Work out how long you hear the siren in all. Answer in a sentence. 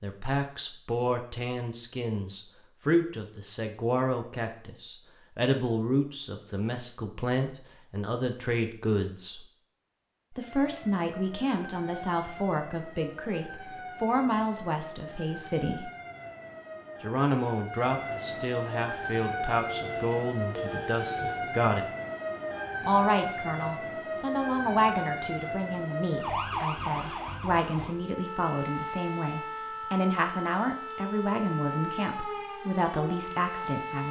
You can hear the siren for 24 seconds altogether.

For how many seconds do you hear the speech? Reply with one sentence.
You can hear the speech for 31 seconds altogether.